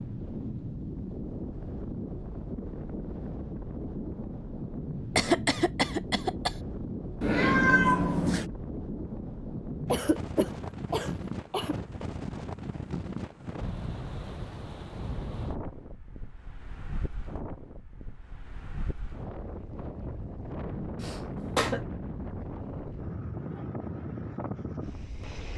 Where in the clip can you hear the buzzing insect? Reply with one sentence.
The buzzing insect can't be heard in this clip.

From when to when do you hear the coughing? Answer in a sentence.
You can hear the coughing from 5.2 to 6.5 s, from 9.9 to 11.8 s and from 21.0 to 21.8 s.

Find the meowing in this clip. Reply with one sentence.
The meowing can be heard from 7.2 to 8.4 s.